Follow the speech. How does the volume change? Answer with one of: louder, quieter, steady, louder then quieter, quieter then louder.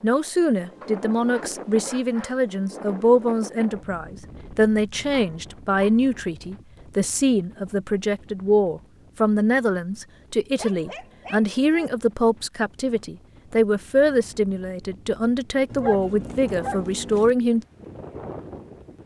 steady.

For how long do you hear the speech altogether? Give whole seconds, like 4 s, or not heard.
18 s.